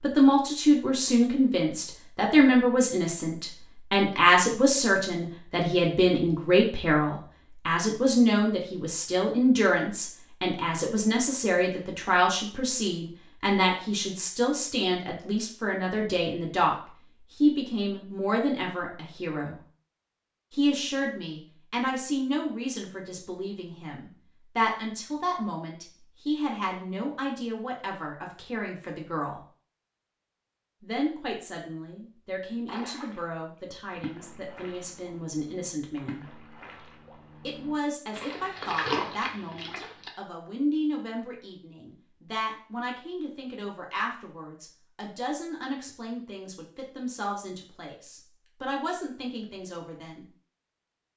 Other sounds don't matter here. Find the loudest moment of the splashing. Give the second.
39 s.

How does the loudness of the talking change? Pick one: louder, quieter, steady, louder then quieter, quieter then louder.
quieter.